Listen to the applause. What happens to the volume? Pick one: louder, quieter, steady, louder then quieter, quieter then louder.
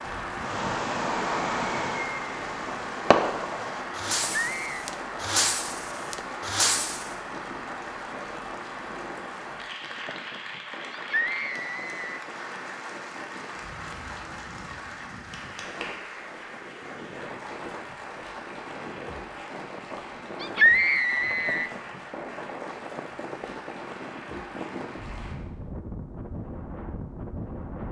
quieter.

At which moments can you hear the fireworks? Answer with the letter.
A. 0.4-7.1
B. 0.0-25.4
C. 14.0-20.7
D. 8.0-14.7
A.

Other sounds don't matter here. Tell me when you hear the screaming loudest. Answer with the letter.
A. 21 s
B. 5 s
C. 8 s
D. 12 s
A.